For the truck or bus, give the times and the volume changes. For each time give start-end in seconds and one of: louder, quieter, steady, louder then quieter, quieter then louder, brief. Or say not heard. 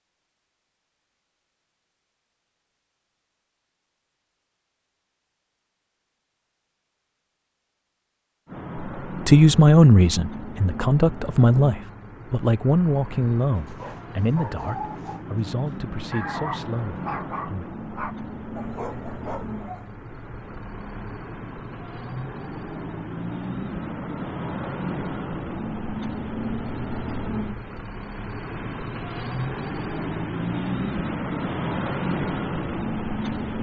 8.4-33.5 louder.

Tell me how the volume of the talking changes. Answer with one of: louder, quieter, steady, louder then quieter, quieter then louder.
quieter.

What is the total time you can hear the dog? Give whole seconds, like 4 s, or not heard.
6 s.